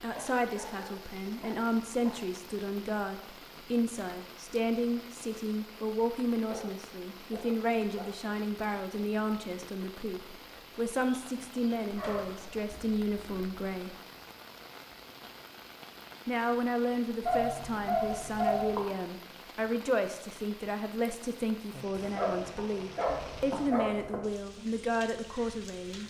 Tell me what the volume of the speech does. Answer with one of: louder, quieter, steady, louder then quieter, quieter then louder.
steady.